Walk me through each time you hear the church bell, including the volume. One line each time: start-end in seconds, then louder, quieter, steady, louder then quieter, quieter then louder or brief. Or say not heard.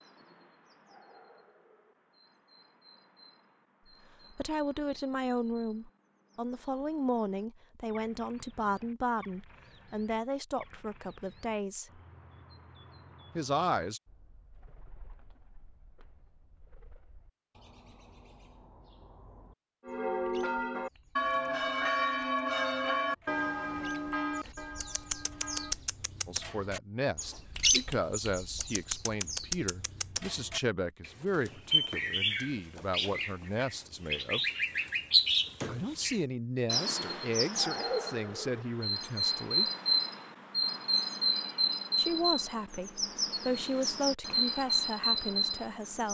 19.9-25.8 quieter.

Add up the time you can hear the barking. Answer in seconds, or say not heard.
not heard.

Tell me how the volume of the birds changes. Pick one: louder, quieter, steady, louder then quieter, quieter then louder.
louder.